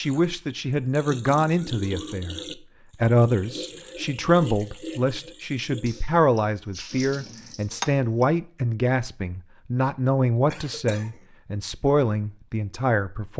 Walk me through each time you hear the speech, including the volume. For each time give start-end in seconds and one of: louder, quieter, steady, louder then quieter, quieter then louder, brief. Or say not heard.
0.0-2.4 brief
3.0-13.3 steady.